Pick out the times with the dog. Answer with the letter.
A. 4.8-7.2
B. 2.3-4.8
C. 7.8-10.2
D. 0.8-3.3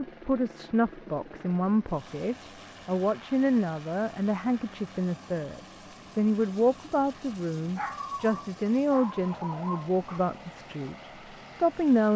C.